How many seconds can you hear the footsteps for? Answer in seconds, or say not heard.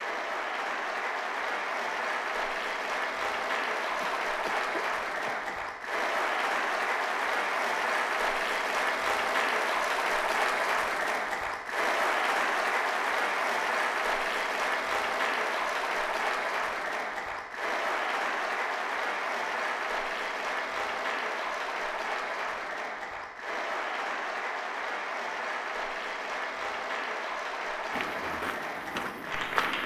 2 s.